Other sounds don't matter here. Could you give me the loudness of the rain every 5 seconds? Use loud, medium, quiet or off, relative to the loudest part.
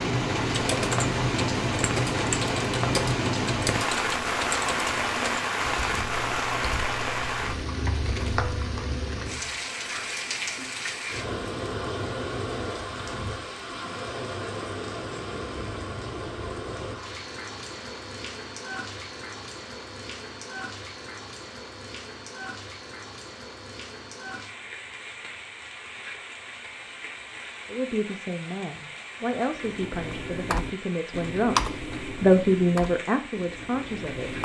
loud, loud, medium, medium, quiet, quiet, quiet.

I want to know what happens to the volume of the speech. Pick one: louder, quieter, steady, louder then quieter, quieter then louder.
louder then quieter.